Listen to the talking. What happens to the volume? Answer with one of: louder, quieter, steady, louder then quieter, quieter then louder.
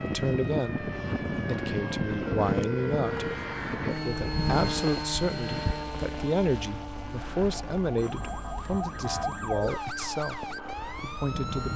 steady.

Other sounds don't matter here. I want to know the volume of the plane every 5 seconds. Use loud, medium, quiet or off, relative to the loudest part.
loud, medium, medium.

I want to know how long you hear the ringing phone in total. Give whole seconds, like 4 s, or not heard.
3 s.